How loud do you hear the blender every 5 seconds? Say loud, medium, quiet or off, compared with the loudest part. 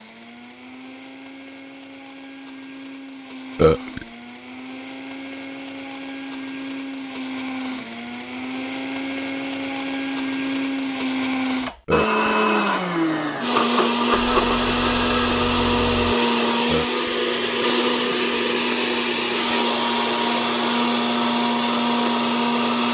quiet, medium, loud, loud, loud.